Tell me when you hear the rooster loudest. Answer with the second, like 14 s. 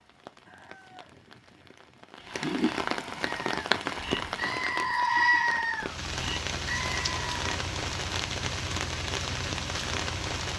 1 s.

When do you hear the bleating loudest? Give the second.
5 s.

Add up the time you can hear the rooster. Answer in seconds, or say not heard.
2 s.